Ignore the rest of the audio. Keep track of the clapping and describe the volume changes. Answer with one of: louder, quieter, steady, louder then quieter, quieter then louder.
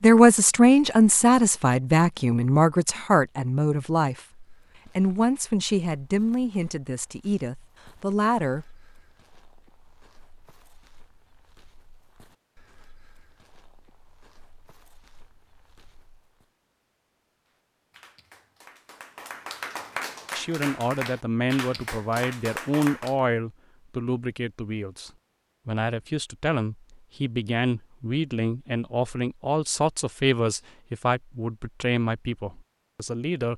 louder.